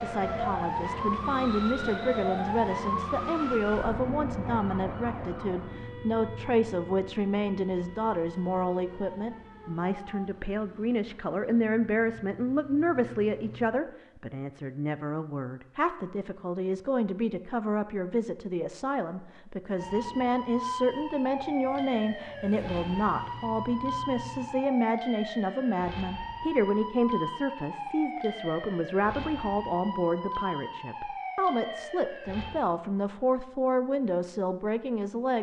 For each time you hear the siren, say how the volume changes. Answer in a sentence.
You can hear the siren from 0.0 to 10.2 s, getting quieter; and from 19.8 to 32.6 s, at a steady volume.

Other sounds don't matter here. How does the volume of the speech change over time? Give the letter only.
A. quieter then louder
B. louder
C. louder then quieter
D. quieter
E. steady
E.